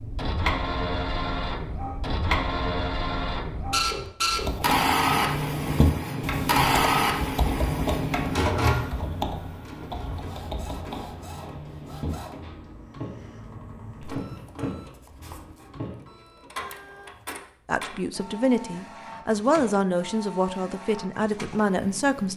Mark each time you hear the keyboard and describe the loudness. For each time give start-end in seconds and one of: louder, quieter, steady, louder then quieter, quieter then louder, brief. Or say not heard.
4.3-16.0 quieter.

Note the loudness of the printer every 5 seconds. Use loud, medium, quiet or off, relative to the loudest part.
loud, loud, quiet, quiet, quiet.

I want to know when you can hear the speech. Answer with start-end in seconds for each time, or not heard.
17.6-22.3.